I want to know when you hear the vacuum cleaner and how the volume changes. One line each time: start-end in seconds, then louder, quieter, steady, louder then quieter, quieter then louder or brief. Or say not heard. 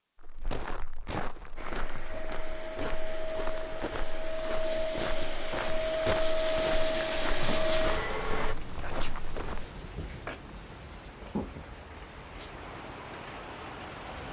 1.6-8.6 louder.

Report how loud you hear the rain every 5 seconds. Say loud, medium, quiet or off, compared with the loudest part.
off, loud, loud.